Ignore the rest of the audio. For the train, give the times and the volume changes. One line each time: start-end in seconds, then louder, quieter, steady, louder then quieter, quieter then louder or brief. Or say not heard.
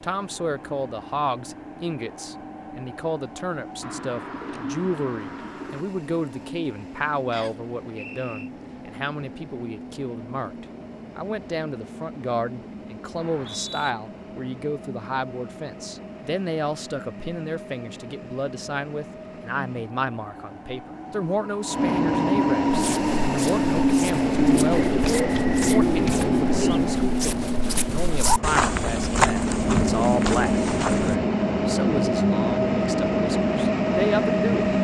0.0-34.7 louder.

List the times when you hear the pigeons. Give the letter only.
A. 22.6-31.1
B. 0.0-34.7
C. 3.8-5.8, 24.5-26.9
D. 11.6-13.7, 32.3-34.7
C.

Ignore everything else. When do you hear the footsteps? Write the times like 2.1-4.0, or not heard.
22.6-31.1.